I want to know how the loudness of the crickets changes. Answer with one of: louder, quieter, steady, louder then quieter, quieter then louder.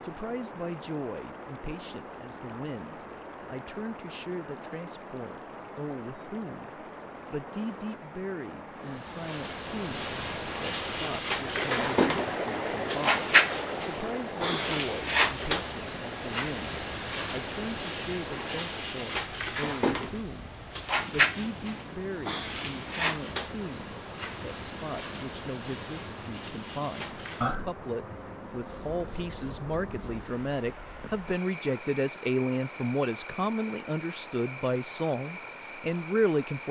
quieter.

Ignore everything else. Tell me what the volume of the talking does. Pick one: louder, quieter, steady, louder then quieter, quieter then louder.
louder.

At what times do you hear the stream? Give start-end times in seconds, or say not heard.
0.0-36.6.